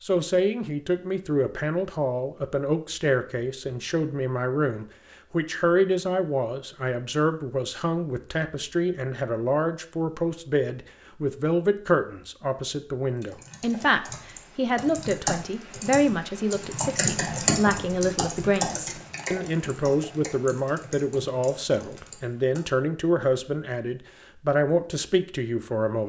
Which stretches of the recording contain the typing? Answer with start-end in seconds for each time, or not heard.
13.2-22.6.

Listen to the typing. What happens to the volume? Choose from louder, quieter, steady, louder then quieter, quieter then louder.
louder then quieter.